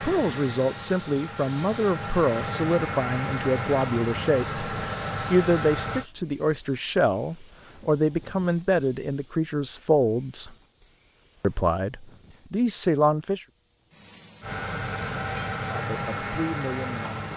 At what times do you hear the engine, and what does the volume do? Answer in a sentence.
You can hear the engine from 0.0 to 6.0 s, getting louder; and briefly from 14.4 to 17.3 s.